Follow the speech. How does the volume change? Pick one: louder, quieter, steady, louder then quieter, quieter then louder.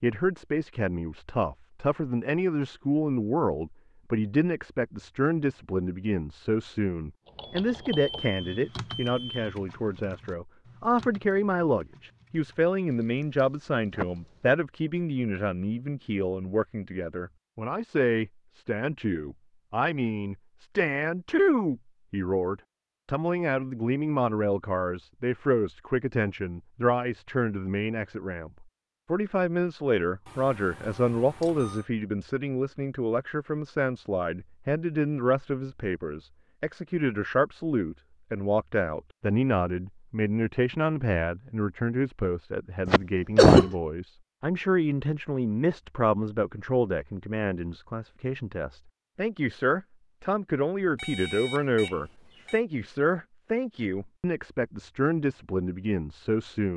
steady.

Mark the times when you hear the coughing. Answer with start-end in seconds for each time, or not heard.
13.9-14.6, 42.9-43.7.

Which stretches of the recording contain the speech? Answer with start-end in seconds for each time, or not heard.
0.0-56.7.